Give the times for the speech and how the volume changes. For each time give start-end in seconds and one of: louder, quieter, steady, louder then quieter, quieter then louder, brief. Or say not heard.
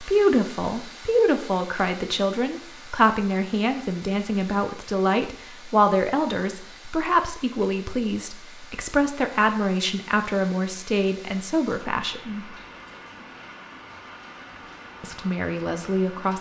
0.0-12.4 steady
15.0-16.3 brief.